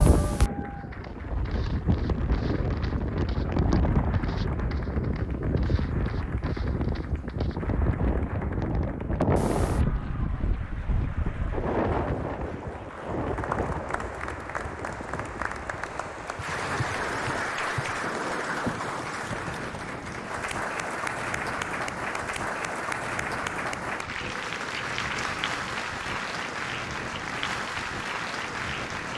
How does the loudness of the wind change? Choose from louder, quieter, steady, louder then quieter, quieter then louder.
quieter.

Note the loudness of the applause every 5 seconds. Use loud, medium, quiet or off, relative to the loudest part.
medium, quiet, medium, loud, loud, loud.